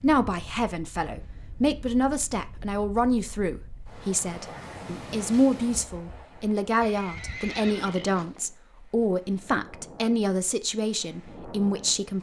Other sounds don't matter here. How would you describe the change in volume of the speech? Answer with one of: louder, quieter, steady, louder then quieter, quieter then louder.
steady.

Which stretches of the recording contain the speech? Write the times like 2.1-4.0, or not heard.
0.0-12.1.